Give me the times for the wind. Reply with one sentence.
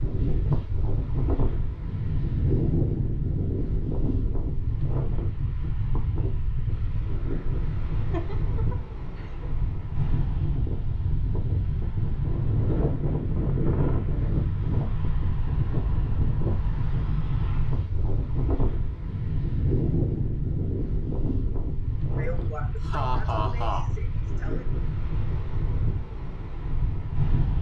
You can hear the wind from 0.0 to 27.5 s.